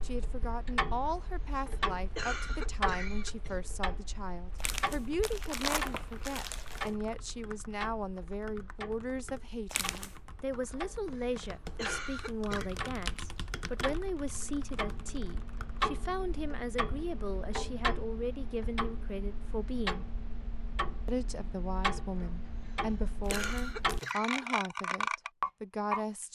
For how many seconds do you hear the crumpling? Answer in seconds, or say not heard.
4 s.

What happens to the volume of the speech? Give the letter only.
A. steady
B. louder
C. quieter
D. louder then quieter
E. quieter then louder
A.